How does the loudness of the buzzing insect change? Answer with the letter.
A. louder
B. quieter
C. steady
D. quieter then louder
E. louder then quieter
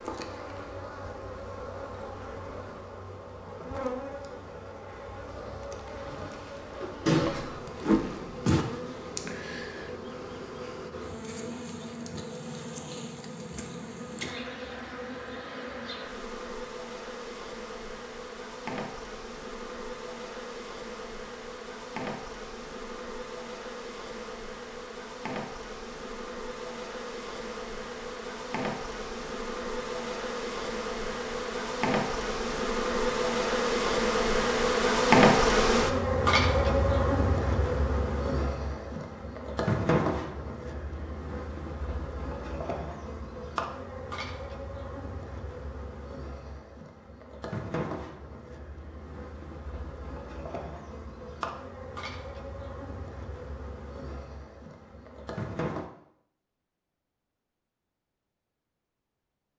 E.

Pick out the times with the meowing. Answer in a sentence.
You can hear the meowing from 7.0 to 8.7 s.